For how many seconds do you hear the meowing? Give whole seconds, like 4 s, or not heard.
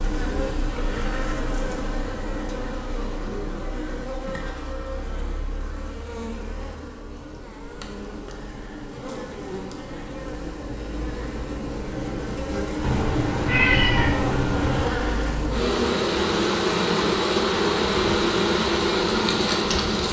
2 s.